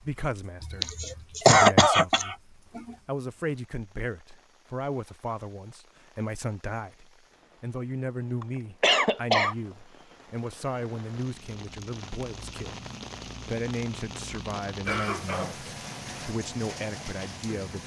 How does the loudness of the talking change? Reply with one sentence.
The volume of the talking stays about the same.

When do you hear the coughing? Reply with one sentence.
The coughing can be heard from 0.6 to 2.8 s, from 8.4 to 9.6 s and from 14.8 to 16.2 s.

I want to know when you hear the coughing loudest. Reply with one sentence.
The loudest moment of the coughing is at 2 seconds.